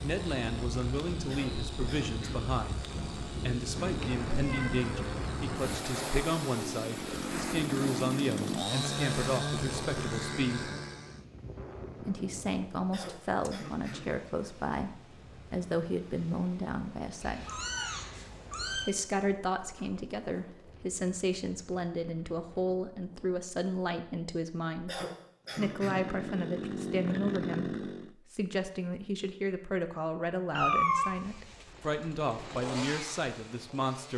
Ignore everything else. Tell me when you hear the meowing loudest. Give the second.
31 s.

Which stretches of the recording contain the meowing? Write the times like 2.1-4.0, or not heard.
3.8-5.8, 17.2-18.9, 30.5-31.1.